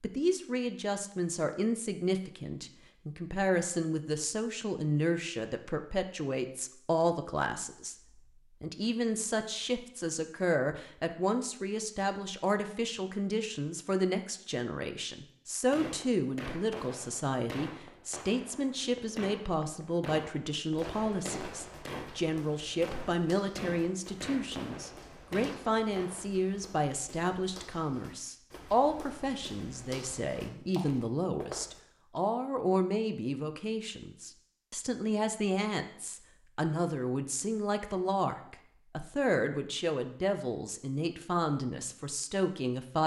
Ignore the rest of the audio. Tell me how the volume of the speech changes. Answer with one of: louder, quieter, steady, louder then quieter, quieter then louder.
steady.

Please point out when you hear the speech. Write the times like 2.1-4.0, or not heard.
0.0-43.0.